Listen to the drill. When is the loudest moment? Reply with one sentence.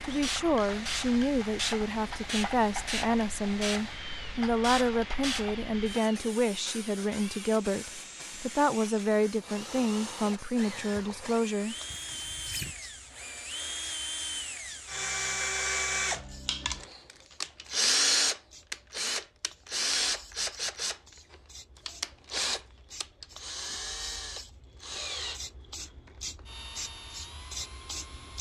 The volume of the drill peaks at 18 seconds.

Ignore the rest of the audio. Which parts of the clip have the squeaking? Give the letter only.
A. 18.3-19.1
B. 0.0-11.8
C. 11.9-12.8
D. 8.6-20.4
C.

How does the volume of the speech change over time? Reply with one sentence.
The loudness of the speech stays about the same.